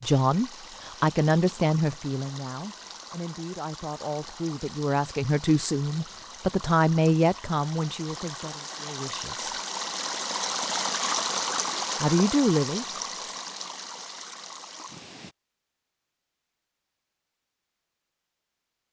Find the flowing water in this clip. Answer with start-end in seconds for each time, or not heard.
0.0-15.3.